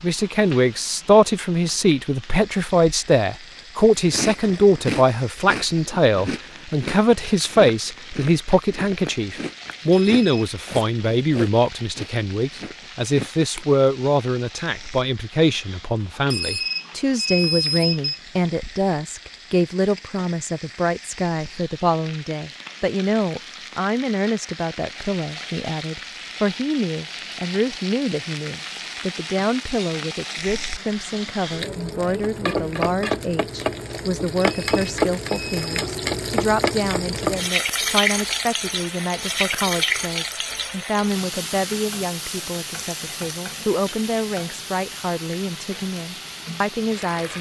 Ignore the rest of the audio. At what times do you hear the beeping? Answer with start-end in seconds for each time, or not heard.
9.9-10.5, 16.3-18.2, 34.4-35.8.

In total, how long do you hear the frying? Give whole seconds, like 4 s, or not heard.
47 s.